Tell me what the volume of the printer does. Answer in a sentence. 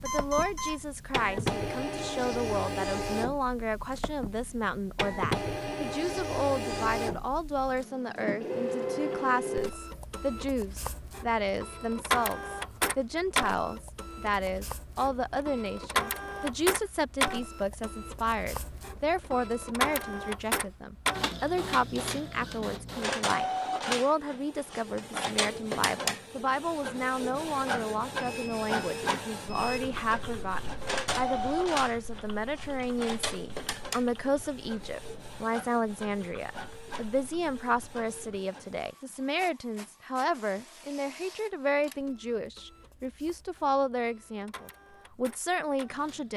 The loudness of the printer goes down.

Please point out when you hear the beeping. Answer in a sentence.
You can hear the beeping from 0.1 to 0.8 s and from 28.1 to 29.8 s.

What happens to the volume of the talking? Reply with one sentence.
The loudness of the talking stays about the same.